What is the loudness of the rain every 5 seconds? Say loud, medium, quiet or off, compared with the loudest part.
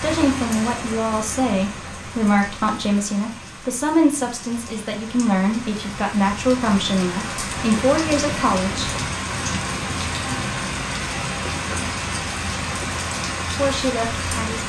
medium, loud, loud.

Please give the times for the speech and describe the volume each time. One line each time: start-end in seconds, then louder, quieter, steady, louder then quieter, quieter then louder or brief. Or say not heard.
0.0-8.9 steady
13.4-14.6 brief.